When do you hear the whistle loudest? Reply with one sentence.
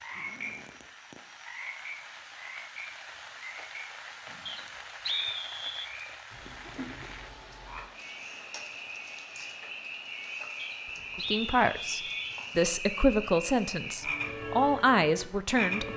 The loudest moment of the whistle is at 5 seconds.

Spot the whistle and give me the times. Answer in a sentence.
The whistle can be heard from 4.5 to 5.9 s and from 10.6 to 12.2 s.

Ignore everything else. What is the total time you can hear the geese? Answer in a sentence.
You can't hear the geese here.